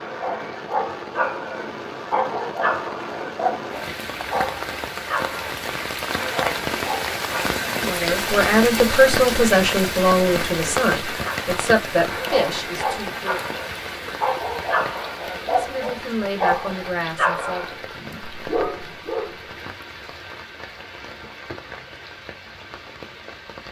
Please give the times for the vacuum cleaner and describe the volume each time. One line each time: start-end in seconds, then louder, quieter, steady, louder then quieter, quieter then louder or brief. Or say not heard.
not heard.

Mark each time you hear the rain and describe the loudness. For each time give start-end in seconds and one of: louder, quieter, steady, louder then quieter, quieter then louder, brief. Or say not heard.
0.0-23.6 louder then quieter.